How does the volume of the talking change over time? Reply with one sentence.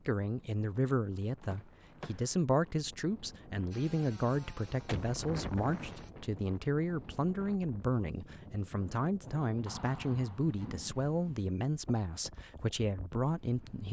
The volume of the talking stays about the same.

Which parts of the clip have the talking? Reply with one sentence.
The talking can be heard from 0.1 to 13.8 s.